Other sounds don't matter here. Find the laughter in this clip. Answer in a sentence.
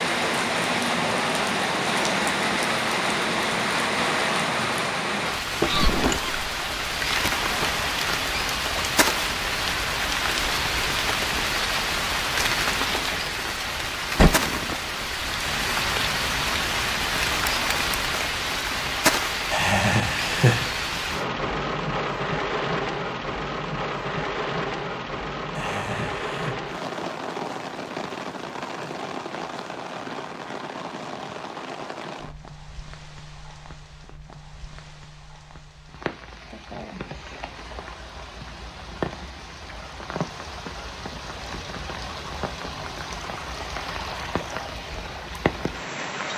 You can hear the laughter from 19.5 to 20.6 s and from 25.6 to 26.6 s.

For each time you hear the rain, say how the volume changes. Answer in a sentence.
You can hear the rain from 0.0 to 46.3 s, getting quieter.